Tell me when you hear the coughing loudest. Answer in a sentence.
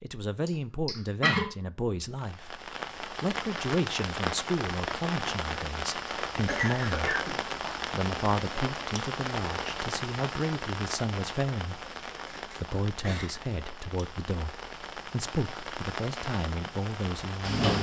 The volume of the coughing peaks at 1 second.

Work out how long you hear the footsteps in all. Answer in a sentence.
The footsteps can't be heard in this clip.